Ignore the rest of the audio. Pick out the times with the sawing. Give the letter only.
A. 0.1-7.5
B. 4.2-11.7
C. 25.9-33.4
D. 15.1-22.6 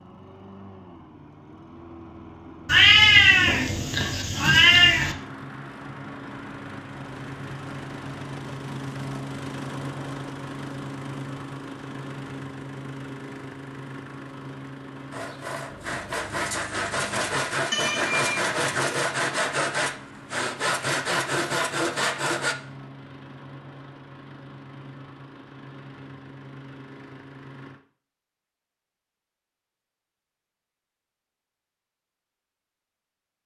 D.